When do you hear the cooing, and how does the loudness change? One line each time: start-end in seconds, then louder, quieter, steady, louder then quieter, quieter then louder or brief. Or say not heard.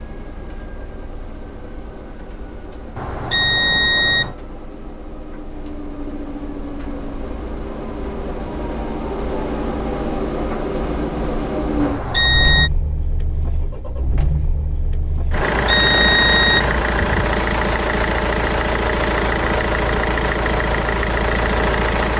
not heard.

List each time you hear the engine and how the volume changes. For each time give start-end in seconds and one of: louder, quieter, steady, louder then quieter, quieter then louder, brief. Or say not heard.
0.0-22.1 louder.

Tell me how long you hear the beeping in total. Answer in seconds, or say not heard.
4 s.